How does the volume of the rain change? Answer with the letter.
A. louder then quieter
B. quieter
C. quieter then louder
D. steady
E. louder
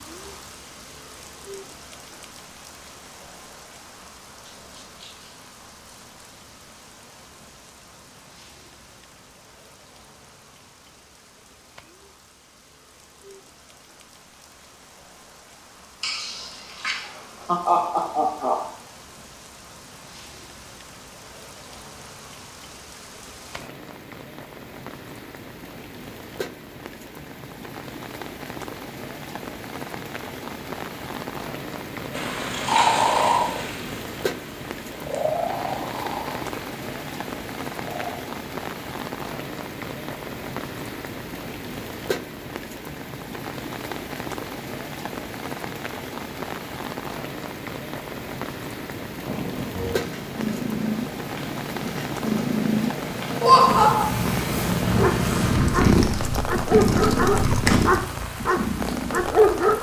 E.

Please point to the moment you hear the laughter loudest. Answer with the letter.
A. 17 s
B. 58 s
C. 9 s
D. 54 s
D.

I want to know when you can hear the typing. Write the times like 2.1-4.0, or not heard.
55.5-58.0.